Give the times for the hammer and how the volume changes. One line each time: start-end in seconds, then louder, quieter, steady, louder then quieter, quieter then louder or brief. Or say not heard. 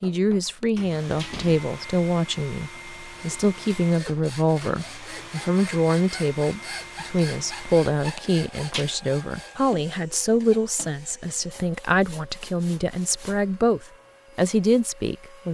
not heard.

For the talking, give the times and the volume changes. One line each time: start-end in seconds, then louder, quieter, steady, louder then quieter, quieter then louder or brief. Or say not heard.
0.0-15.4 steady.